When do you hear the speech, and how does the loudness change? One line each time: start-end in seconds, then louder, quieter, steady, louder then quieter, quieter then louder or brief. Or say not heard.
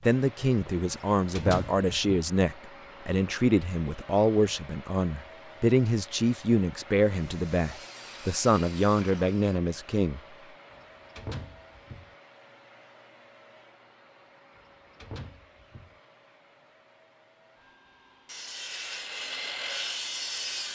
0.0-10.2 steady.